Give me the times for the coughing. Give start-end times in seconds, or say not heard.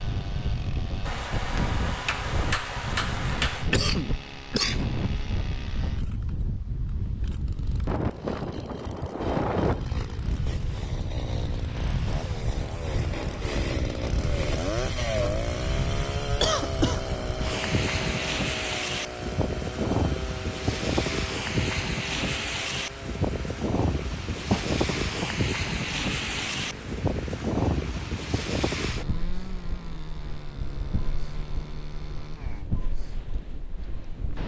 3.7-4.9, 16.4-17.0, 24.4-25.4.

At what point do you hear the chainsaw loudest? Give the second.
15 s.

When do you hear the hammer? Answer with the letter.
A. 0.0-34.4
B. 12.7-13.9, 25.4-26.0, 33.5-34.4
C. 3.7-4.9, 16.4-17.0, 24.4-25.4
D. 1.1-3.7
D.